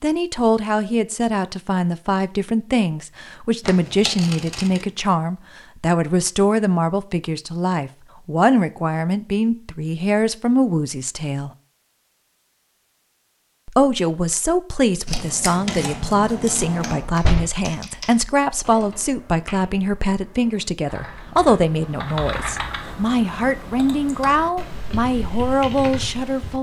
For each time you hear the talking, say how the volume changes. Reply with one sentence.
You can hear the talking from 0.0 to 11.5 s, at a steady volume; and from 13.7 to 26.5 s, at a steady volume.